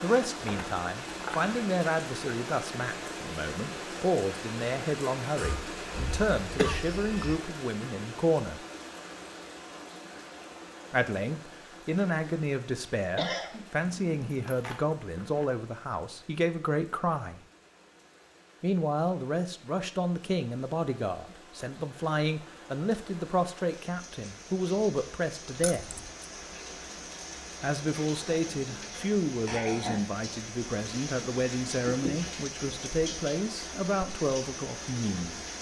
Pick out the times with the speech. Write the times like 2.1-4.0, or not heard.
0.0-8.7, 10.9-17.4, 18.6-25.9, 27.6-35.5.